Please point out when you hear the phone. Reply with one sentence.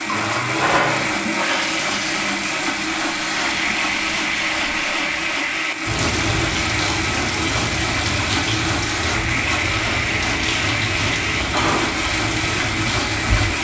The phone can't be heard in this clip.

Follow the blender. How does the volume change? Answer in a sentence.
The volume of the blender stays about the same.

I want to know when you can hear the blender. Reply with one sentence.
The blender can be heard from 0.0 to 13.5 s.